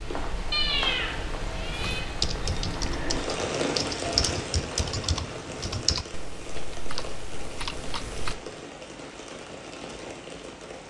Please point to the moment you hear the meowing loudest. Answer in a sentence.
The loudest moment of the meowing is at 1 second.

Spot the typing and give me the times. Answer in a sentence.
You can hear the typing from 1.8 to 8.3 s.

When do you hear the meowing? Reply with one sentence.
The meowing can be heard from 0.5 to 2.0 s.